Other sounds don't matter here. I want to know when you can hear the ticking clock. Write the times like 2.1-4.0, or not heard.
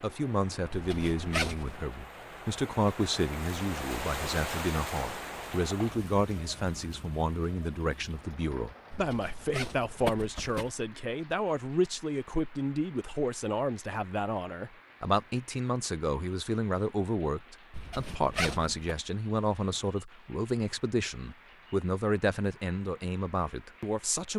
not heard.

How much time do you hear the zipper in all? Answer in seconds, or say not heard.
4 s.